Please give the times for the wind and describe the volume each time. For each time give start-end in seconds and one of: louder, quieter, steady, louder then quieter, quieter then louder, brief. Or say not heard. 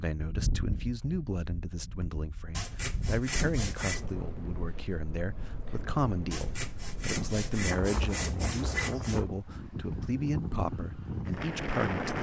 0.2-12.1 louder.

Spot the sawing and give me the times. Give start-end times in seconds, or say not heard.
2.5-4.0, 6.3-9.2.